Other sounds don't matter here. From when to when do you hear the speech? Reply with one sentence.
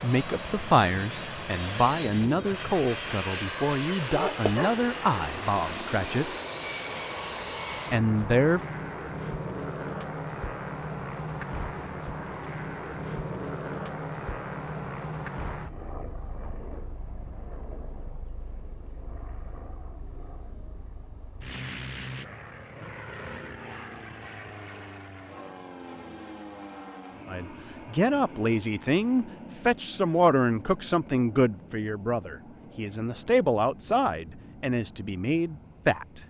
The speech can be heard from 0.0 to 6.3 s, from 7.9 to 8.6 s and from 27.2 to 36.2 s.